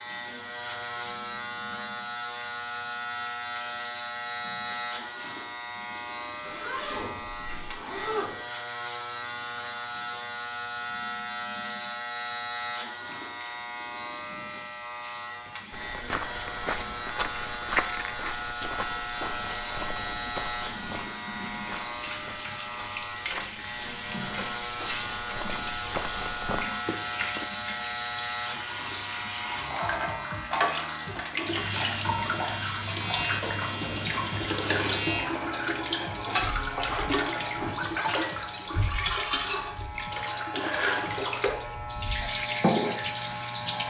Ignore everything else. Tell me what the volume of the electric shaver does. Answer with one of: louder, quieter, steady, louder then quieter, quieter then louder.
steady.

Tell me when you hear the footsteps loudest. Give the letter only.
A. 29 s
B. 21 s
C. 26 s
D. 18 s
D.